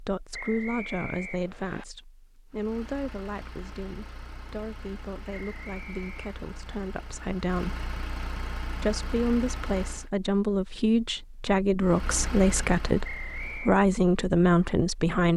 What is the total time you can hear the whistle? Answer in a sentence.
You can hear the whistle for 3 seconds altogether.